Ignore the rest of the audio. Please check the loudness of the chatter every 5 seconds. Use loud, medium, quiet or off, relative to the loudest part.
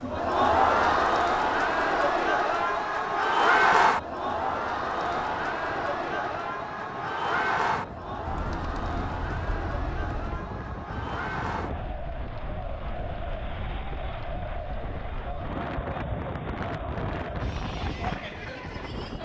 loud, medium, quiet, quiet.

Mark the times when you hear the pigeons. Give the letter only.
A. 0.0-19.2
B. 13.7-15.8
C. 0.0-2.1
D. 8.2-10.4
D.